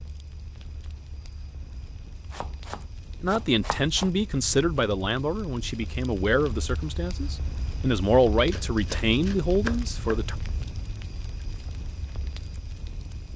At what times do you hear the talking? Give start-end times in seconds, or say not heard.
3.2-10.3.